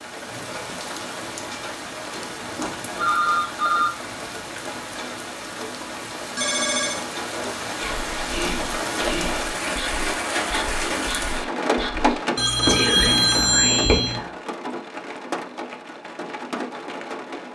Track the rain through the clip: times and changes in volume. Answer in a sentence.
You can hear the rain from 0.0 to 17.5 s, getting louder then quieter.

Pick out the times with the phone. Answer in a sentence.
The phone can be heard from 2.1 to 3.9 s, from 6.3 to 7.0 s and from 12.3 to 14.2 s.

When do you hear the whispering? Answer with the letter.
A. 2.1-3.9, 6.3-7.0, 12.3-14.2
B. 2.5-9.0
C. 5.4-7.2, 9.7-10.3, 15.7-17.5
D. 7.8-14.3
D.